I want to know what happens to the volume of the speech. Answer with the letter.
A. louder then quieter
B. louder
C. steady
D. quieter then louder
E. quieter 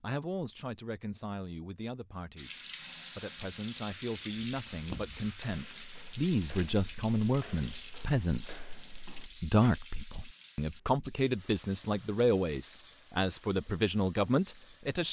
B.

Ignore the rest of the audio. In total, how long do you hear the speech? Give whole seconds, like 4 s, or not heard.
15 s.